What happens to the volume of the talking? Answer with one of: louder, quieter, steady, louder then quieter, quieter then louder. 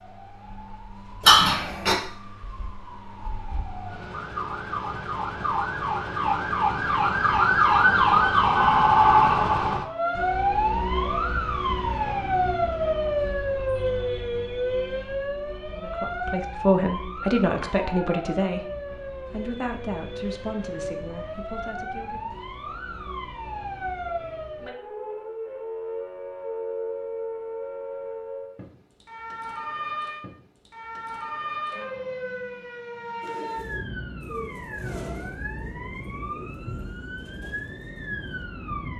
quieter.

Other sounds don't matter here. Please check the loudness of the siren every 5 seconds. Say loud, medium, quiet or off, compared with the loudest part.
quiet, loud, medium, quiet, quiet, quiet, quiet, quiet.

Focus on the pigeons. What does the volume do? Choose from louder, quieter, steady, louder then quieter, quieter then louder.
quieter.